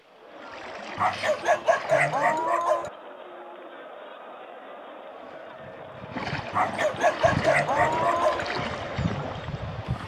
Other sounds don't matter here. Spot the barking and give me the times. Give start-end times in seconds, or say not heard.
0.9-2.9, 6.5-8.4.